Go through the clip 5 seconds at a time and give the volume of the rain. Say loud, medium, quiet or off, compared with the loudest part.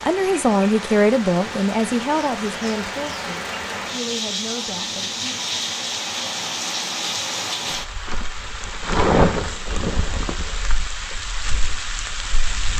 medium, loud, medium.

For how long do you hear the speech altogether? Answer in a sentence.
The speech can be heard for 5 seconds in total.